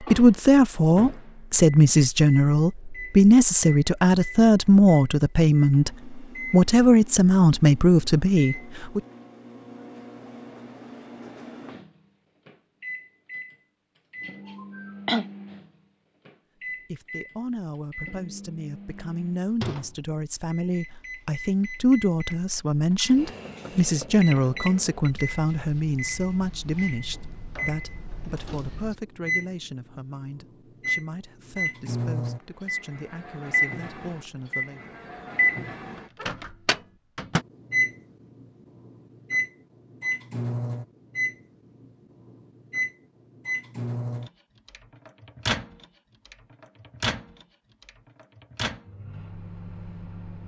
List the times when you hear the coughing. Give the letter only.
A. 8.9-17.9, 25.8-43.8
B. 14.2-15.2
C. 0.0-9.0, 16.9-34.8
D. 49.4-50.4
B.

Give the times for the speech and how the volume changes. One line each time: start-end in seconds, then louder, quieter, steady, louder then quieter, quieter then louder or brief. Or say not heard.
0.0-9.0 steady
16.9-34.8 louder then quieter.